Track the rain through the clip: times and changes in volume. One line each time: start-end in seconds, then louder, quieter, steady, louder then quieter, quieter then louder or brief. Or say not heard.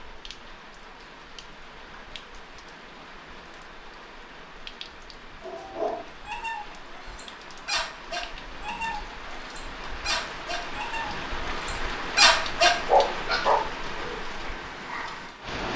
0.0-15.7 louder.